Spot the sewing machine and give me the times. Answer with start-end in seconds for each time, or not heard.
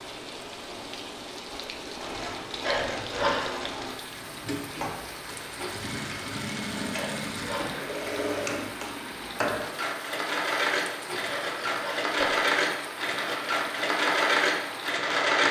1.9-15.4.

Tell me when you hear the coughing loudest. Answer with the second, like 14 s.
3 s.